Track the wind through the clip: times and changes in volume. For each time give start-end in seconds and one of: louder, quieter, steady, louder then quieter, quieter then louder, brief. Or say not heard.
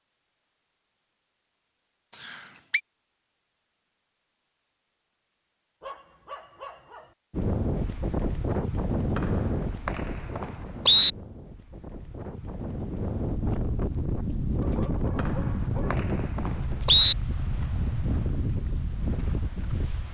7.3-20.0 quieter then louder.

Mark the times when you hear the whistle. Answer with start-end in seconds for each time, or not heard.
2.1-2.8, 9.2-11.1, 15.2-17.1.